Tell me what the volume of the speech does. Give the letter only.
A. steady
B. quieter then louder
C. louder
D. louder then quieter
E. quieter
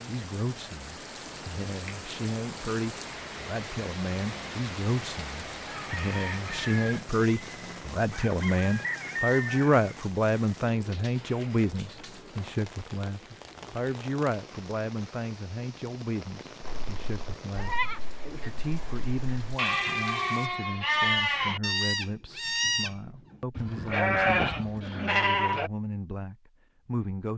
D.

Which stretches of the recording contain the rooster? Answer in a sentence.
The rooster can be heard from 5.7 to 10.0 s.